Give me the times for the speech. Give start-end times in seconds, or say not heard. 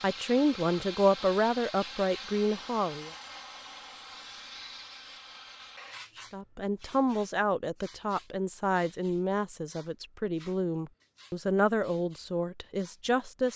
0.0-3.1, 6.3-13.5.